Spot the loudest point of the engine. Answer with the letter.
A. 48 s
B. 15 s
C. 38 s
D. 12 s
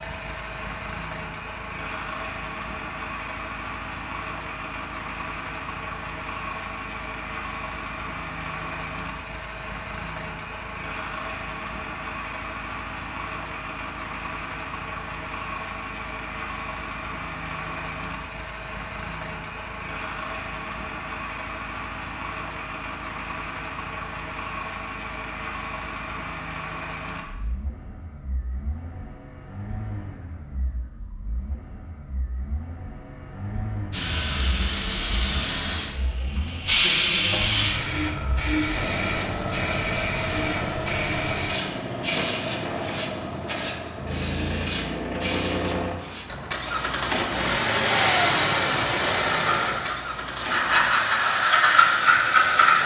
A.